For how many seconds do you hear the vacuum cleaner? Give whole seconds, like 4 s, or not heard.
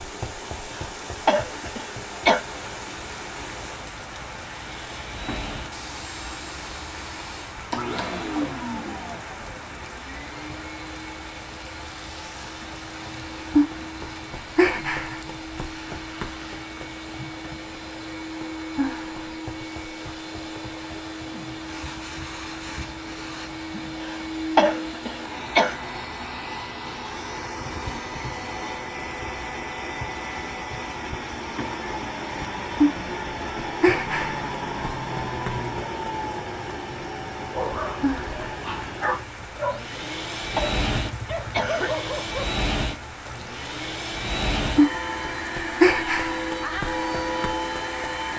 48 s.